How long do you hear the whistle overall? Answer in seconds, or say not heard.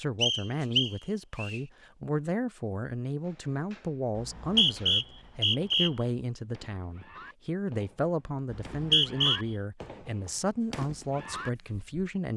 4 s.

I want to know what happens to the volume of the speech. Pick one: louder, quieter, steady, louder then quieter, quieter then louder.
steady.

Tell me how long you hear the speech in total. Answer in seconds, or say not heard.
12 s.